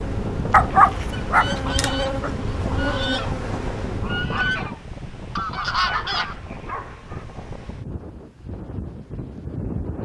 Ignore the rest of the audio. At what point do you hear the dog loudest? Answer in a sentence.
The loudest moment of the dog is at 1 second.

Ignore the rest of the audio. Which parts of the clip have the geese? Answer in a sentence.
The geese can be heard from 1.1 to 6.3 s.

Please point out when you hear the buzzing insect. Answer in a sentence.
The buzzing insect can be heard from 0.0 to 4.5 s.